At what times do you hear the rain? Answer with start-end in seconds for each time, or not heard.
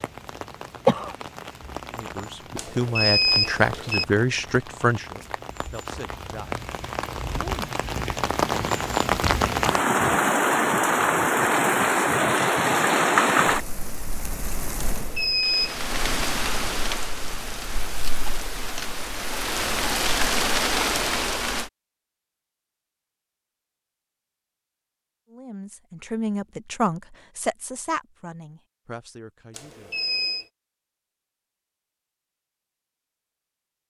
0.0-21.7.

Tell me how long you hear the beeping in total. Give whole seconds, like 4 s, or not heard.
3 s.